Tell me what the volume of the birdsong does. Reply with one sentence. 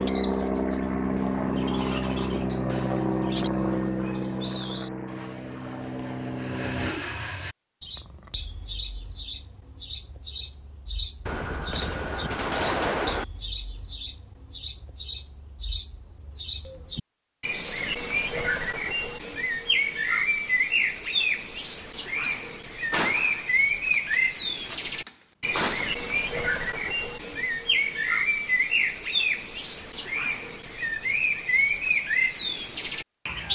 The volume of the birdsong goes up.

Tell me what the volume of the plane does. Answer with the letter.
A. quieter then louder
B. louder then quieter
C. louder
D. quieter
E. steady
D.